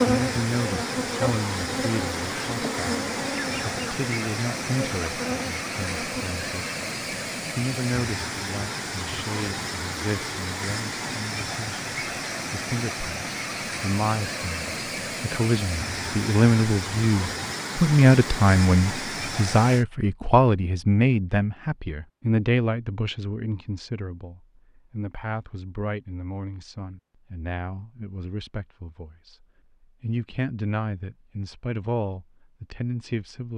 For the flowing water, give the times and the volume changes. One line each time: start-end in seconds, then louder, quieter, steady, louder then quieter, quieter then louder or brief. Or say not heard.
0.0-19.9 steady.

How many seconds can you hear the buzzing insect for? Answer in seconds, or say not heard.
6 s.